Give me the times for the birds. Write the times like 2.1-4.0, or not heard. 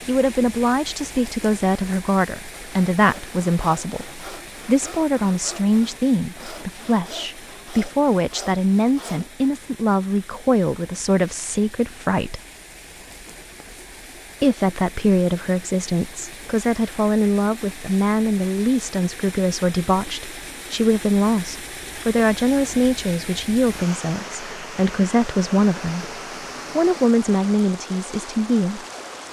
not heard.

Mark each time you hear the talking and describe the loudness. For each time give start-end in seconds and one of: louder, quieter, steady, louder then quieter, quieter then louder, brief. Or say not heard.
0.1-12.4 steady
14.4-26.1 steady
26.8-28.9 brief.